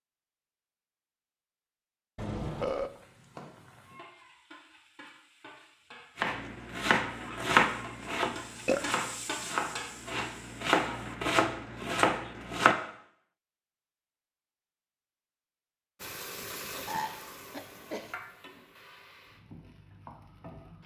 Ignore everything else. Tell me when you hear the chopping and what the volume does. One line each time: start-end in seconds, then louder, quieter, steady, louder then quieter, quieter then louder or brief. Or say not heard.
6.2-12.8 quieter then louder.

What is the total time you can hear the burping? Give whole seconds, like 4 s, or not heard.
3 s.